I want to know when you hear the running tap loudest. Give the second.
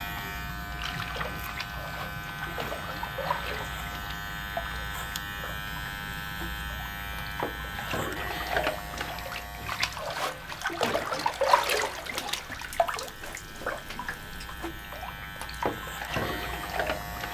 11 s.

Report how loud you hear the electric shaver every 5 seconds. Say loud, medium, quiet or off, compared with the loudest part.
loud, loud, medium, loud.